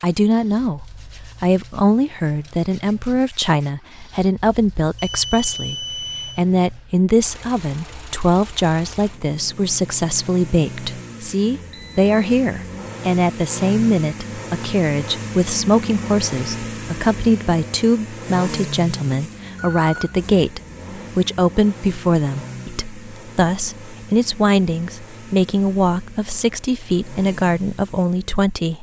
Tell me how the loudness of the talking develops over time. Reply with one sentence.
The volume of the talking stays about the same.